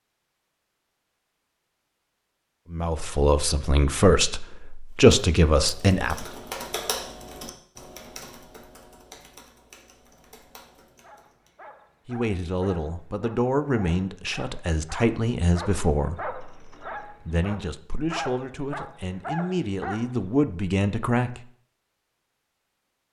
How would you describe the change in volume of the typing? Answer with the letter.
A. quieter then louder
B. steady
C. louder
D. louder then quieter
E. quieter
E.